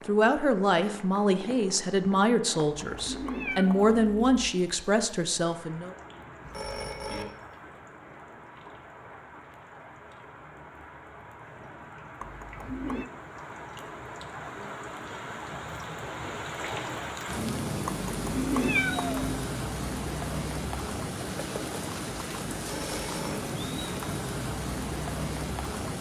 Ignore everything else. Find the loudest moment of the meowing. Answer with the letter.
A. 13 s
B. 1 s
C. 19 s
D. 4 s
C.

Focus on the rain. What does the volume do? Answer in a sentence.
The loudness of the rain goes up.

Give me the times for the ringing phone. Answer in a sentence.
The ringing phone can be heard from 6.4 to 7.2 s and from 22.6 to 23.4 s.